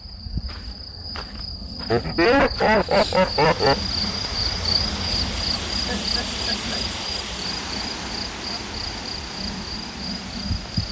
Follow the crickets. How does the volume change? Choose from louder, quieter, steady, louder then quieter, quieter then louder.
louder then quieter.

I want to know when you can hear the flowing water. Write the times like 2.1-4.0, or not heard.
3.2-10.8.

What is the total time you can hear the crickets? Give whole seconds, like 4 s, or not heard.
11 s.